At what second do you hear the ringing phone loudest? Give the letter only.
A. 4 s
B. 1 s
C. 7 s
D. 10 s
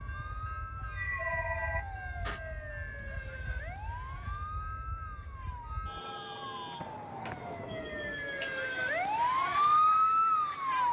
B.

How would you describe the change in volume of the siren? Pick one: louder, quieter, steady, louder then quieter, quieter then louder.
louder.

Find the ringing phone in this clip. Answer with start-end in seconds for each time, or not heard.
0.8-2.4, 6.7-8.9.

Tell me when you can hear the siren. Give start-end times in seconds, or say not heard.
0.0-10.8.